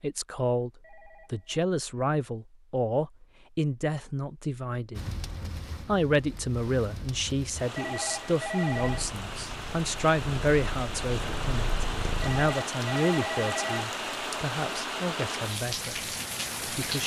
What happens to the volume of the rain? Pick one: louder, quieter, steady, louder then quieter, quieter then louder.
louder.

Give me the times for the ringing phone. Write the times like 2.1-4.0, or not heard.
0.8-1.6, 7.8-9.1, 12.2-13.9.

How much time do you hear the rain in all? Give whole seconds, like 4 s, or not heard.
12 s.